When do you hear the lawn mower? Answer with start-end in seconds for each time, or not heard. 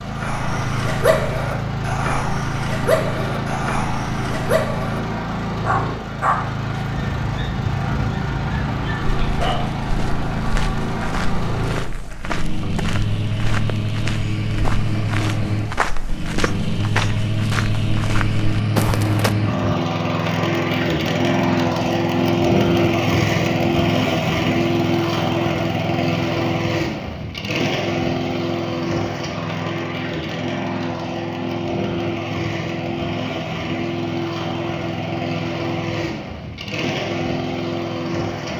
0.0-38.5.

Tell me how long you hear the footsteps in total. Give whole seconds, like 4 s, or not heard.
10 s.